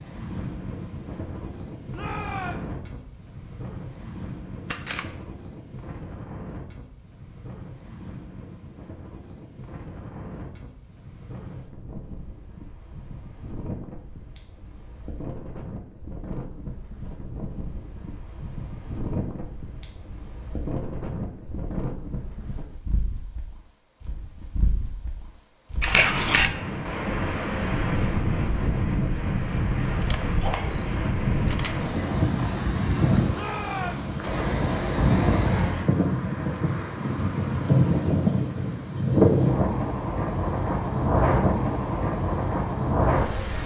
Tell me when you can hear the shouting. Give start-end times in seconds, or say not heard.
1.9-2.8, 26.1-26.6, 33.3-34.1.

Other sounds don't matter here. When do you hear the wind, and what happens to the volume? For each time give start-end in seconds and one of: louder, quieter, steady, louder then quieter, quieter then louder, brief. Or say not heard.
0.0-43.6 louder.